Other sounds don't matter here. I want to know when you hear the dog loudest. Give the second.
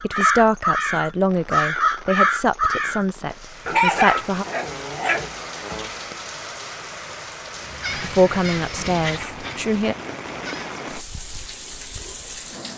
4 s.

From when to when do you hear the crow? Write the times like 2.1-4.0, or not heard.
0.0-3.0, 7.7-10.8.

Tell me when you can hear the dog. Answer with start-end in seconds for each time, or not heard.
3.6-5.3.